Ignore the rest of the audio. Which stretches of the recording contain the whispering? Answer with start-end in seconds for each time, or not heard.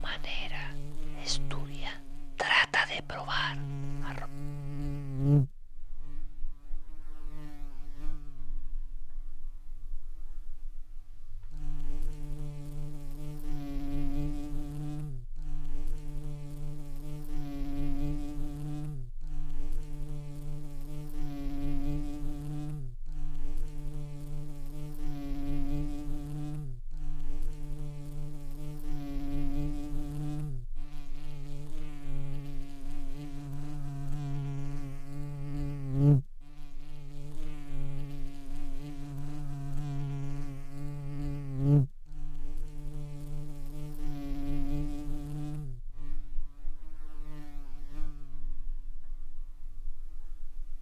0.0-4.3.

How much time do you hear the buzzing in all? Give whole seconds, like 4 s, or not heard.
51 s.